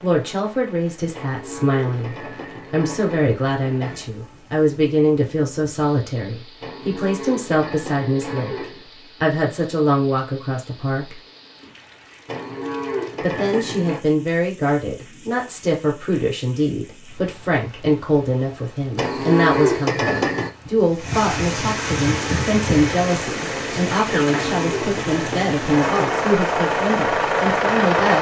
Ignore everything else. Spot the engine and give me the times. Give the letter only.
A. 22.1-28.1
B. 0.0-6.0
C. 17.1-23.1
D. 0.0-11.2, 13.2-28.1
A.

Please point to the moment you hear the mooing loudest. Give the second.
20 s.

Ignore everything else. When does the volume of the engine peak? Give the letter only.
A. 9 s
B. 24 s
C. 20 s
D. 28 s
D.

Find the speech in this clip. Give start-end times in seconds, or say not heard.
0.0-11.2, 13.2-28.1.